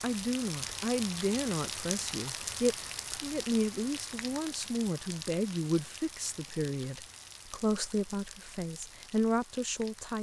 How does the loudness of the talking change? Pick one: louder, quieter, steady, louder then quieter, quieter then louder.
steady.